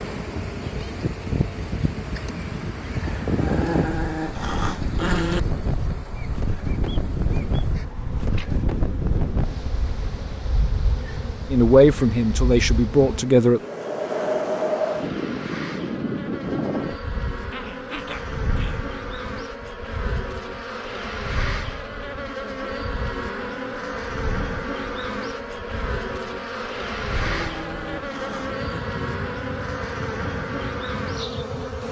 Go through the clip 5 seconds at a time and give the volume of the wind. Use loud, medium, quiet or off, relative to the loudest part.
loud, loud, loud, loud, medium, medium, medium.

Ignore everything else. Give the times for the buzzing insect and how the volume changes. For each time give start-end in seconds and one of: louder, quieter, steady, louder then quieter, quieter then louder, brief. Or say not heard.
0.0-31.8 louder.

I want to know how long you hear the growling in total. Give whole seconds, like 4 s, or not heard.
5 s.